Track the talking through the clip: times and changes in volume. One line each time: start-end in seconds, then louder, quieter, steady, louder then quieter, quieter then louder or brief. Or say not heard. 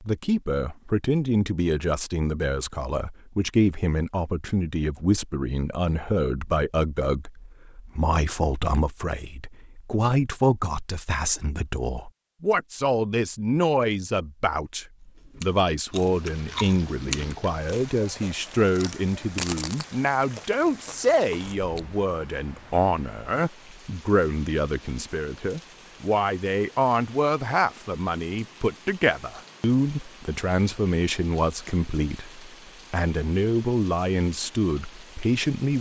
0.0-35.7 steady.